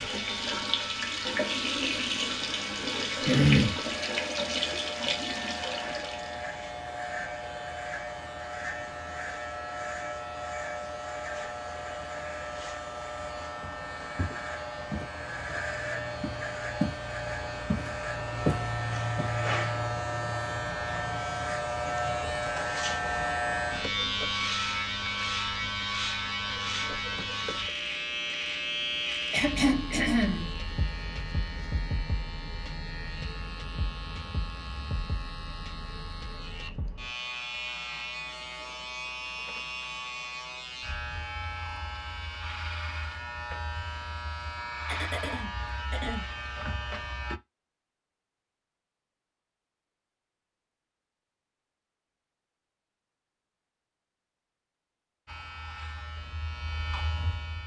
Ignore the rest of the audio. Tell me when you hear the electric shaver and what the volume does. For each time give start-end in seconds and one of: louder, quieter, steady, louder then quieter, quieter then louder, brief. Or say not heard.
0.0-47.4 louder then quieter
55.2-57.6 brief.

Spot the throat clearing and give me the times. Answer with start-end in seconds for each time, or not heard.
3.2-3.8, 29.3-30.6, 44.9-46.2.